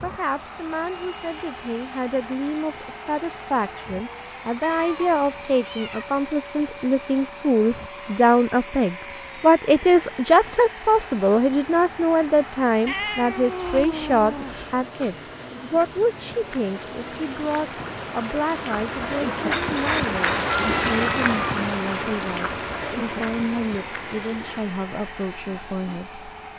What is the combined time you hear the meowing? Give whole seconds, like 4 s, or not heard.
5 s.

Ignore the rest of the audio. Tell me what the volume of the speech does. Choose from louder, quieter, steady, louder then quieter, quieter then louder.
louder then quieter.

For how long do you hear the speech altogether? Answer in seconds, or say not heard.
26 s.